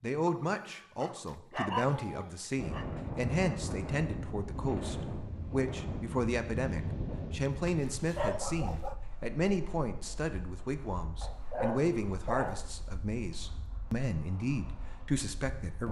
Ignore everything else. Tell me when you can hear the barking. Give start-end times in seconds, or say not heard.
0.2-2.9, 7.5-9.0, 11.2-12.7.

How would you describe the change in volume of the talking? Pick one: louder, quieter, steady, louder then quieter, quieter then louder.
steady.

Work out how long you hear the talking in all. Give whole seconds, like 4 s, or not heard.
16 s.